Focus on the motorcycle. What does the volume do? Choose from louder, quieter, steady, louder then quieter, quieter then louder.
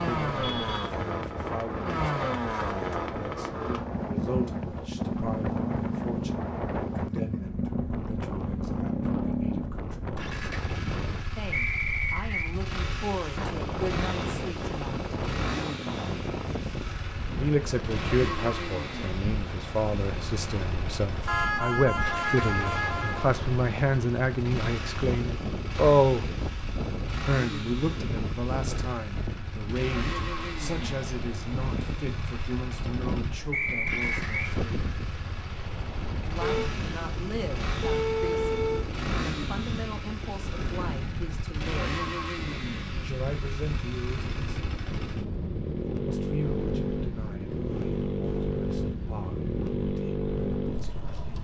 quieter then louder.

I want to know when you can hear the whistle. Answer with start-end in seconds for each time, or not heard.
11.5-12.5, 33.5-34.5.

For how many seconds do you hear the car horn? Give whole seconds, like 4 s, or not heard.
5 s.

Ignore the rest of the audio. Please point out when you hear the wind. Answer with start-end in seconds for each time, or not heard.
0.0-51.4.